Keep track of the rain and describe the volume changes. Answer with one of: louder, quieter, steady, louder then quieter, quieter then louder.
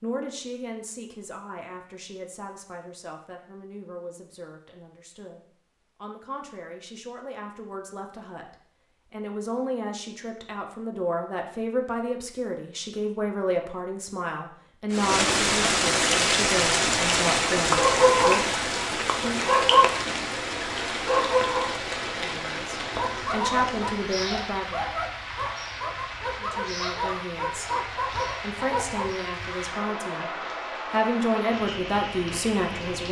quieter.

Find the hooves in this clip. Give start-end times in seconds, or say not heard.
not heard.